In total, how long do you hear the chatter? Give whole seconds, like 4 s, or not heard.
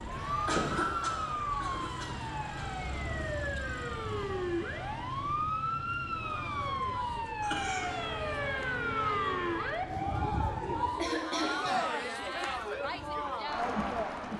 14 s.